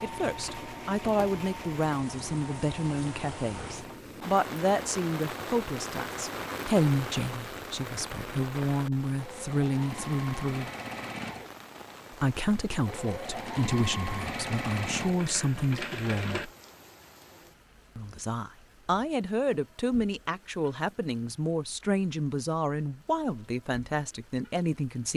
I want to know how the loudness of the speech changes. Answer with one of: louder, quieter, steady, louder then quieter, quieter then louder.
steady.